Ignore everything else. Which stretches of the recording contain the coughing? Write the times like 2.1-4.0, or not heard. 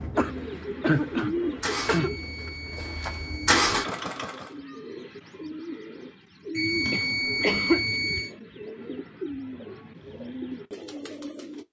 0.1-2.1, 6.9-8.0.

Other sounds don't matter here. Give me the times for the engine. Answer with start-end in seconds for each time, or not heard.
0.0-4.5.